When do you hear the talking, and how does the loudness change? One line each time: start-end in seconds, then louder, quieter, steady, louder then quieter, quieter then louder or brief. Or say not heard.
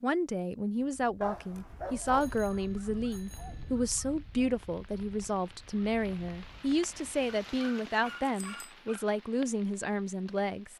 0.0-10.7 steady.